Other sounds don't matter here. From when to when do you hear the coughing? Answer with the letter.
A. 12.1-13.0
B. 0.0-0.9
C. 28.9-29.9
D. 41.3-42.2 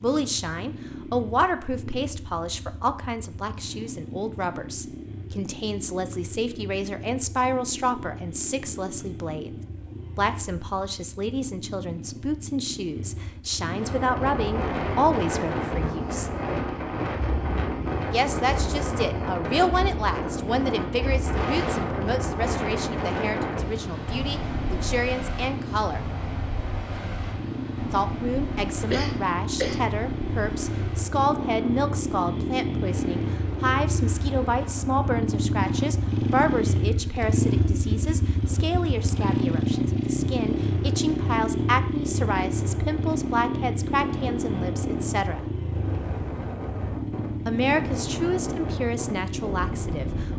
C.